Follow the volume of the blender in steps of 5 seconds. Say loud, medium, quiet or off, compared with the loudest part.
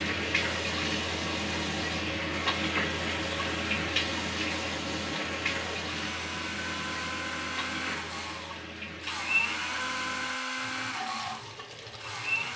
medium, loud, loud.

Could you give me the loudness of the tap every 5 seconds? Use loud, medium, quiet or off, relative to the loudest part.
loud, medium, medium.